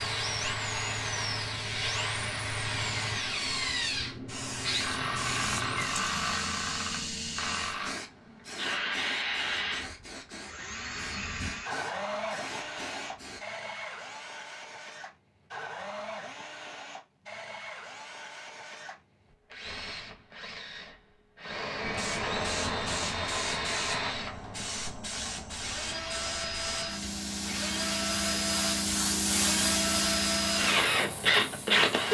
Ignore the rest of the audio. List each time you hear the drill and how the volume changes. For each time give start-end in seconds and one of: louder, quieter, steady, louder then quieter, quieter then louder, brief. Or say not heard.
0.0-32.0 quieter then louder.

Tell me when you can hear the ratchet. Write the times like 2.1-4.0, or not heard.
not heard.